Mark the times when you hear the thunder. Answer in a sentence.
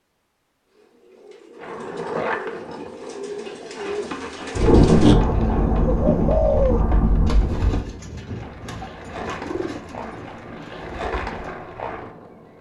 The thunder can be heard from 4.5 to 7.9 s.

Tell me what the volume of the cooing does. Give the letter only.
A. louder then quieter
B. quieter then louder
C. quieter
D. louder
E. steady
A.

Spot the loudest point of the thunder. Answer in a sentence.
The loudest moment of the thunder is at 5 seconds.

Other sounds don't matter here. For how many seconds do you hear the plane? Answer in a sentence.
The plane can't be heard in this clip.